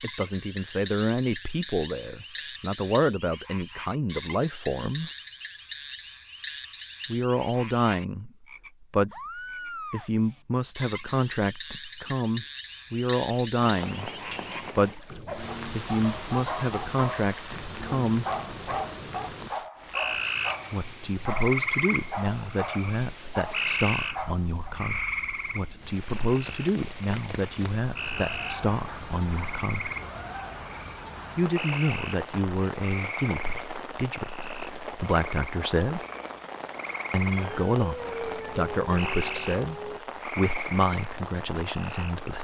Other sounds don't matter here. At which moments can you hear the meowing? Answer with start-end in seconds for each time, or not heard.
37.3-40.0.